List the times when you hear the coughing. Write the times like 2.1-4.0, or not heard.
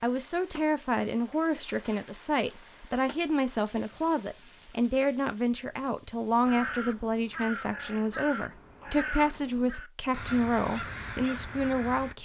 not heard.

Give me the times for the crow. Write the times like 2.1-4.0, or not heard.
6.5-12.2.